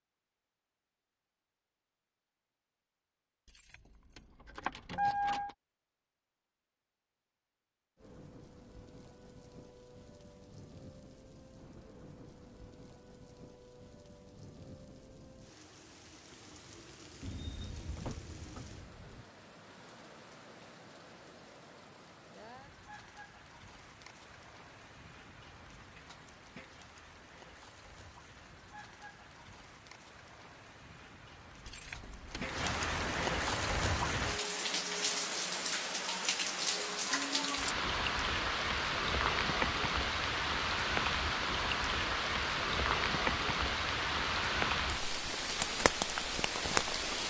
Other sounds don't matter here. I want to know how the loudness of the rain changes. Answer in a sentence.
The volume of the rain goes up.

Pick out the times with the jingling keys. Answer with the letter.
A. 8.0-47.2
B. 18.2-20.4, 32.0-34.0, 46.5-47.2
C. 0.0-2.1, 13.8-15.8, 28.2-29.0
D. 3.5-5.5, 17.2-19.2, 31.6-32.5
D.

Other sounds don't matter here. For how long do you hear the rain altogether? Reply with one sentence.
You can hear the rain for 39 seconds altogether.